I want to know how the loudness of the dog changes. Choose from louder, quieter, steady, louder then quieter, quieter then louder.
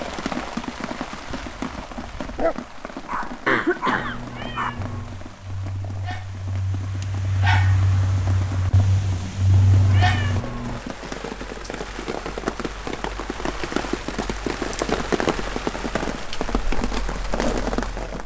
quieter then louder.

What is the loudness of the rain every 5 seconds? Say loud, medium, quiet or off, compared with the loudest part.
medium, quiet, loud, loud.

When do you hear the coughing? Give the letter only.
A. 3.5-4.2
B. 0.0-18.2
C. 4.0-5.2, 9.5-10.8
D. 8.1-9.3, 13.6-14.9
A.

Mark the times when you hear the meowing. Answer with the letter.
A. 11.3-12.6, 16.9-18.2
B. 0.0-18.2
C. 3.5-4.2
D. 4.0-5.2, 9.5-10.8
D.